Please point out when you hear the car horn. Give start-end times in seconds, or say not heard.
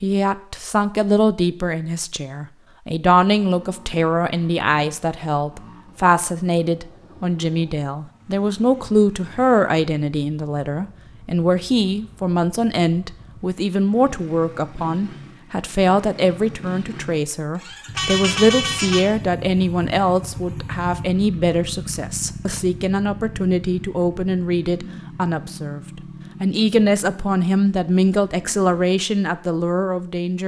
17.9-19.1.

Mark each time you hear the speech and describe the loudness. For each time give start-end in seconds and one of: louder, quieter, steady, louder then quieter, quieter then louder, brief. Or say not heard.
0.0-30.4 steady.